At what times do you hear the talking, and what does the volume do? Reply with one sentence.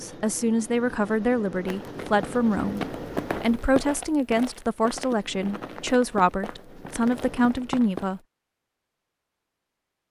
You can hear the talking from 0.0 to 8.2 s, at a steady volume.